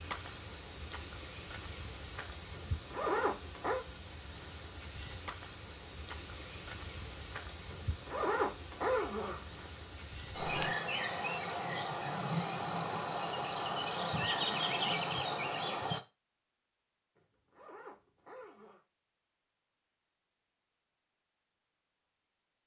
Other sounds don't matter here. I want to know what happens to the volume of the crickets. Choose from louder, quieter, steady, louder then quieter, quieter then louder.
steady.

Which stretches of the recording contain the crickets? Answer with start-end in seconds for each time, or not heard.
0.0-16.0.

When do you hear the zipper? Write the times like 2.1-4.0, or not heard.
2.5-3.9, 7.7-9.7, 17.1-18.9.